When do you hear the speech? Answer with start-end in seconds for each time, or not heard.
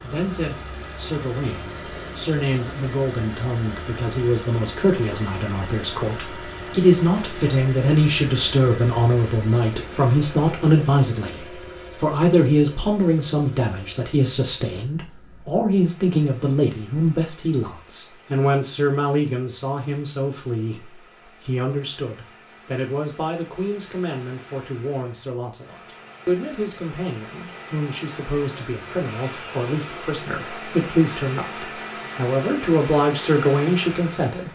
0.0-34.4.